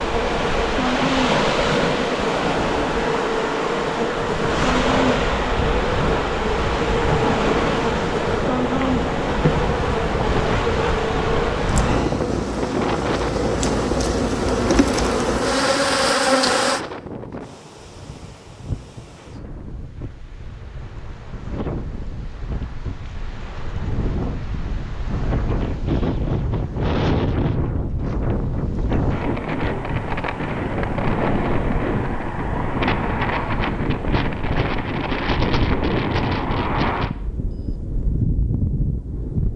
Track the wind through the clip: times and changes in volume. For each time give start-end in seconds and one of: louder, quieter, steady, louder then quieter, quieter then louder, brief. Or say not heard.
0.0-39.5 quieter then louder.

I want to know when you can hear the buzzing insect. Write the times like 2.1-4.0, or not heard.
0.0-16.8.